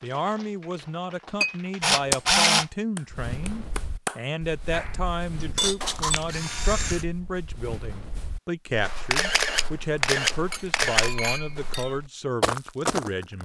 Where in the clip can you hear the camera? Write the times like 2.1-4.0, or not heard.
1.8-2.6, 5.8-7.0, 9.1-11.1.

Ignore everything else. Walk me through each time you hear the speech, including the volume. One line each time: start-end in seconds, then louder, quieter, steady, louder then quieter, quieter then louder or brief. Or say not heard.
0.0-13.4 steady.